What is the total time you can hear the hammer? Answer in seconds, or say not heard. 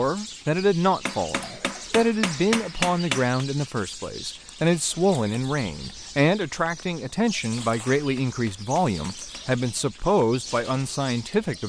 4 s.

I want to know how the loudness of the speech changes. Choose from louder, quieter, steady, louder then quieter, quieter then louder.
steady.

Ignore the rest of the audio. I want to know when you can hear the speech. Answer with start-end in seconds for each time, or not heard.
0.0-11.6.